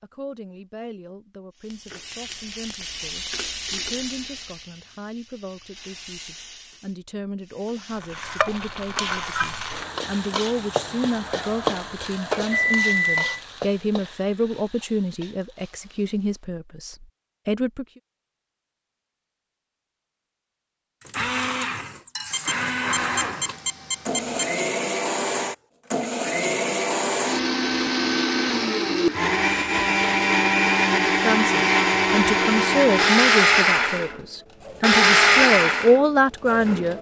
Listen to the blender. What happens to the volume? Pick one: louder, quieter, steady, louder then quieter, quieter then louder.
louder.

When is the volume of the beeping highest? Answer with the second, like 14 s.
13 s.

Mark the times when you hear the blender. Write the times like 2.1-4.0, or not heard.
21.0-36.9.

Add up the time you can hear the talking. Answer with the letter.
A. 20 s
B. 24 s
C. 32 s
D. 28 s
B.